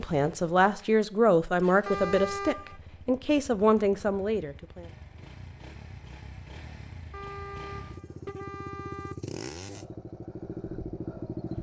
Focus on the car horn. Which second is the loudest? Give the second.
2 s.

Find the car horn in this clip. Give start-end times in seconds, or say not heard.
1.9-2.8, 7.1-9.2.